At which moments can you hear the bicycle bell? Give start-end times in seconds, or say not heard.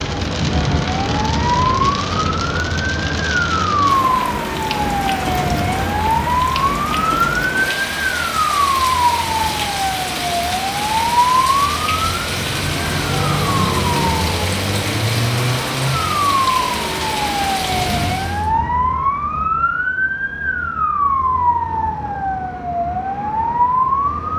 not heard.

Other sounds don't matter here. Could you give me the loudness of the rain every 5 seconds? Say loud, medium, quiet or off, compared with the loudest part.
loud, loud, loud, loud, off.